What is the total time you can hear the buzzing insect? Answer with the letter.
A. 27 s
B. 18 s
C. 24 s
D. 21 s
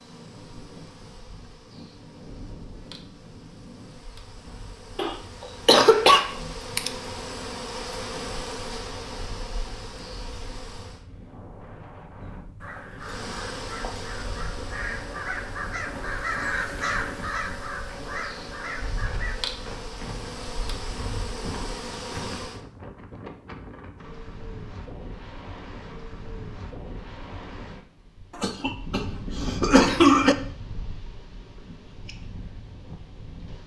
D.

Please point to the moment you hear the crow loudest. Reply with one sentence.
The loudest moment of the crow is at 16 seconds.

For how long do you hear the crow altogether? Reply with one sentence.
The crow can be heard for 7 seconds in total.